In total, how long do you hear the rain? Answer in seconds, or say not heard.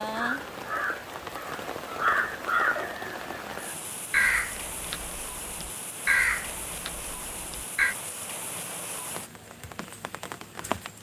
11 s.